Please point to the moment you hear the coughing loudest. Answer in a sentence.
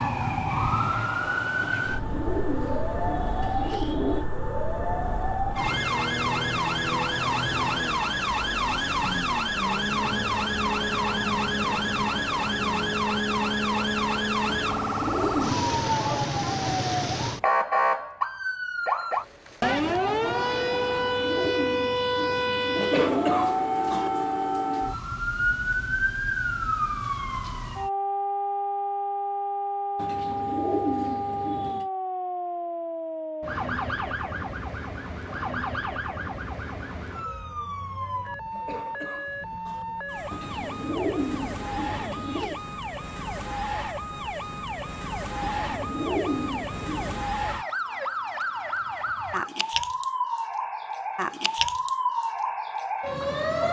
The loudest moment of the coughing is at 23 seconds.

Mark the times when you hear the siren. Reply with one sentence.
The siren can be heard from 0.0 to 53.6 s.